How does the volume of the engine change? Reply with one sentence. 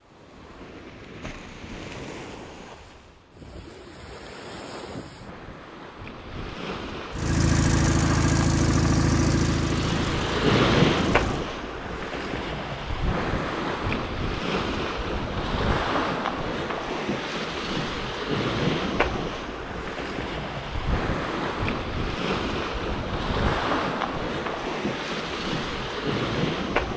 The loudness of the engine goes down.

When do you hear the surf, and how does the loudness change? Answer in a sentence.
You can hear the surf from 0.0 to 26.9 s, getting louder.